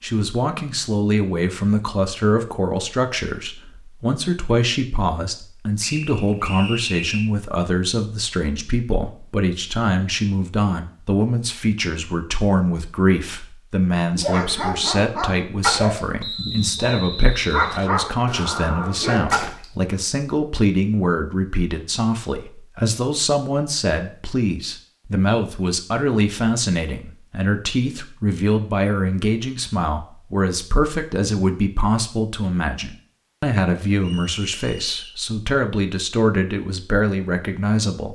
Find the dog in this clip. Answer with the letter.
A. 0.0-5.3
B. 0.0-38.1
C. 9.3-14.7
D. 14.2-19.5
D.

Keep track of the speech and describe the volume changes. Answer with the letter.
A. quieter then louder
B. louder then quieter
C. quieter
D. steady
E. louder
D.